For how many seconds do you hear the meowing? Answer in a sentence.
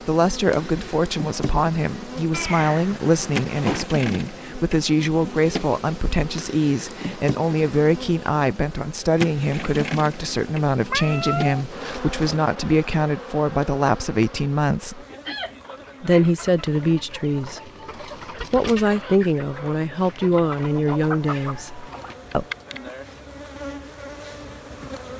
You can hear the meowing for 4 seconds altogether.